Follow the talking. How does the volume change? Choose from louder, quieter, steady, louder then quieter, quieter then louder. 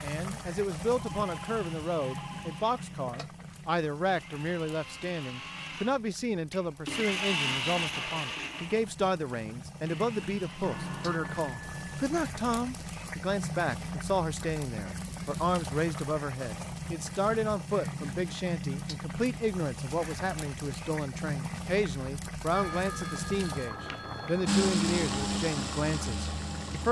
steady.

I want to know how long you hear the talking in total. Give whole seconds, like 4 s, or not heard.
27 s.